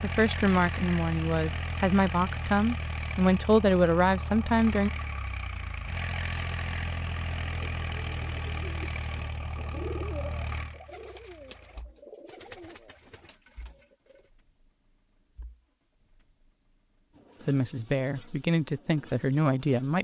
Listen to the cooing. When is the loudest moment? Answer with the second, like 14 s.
10 s.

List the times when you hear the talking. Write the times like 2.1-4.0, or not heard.
0.0-4.9, 17.4-19.9.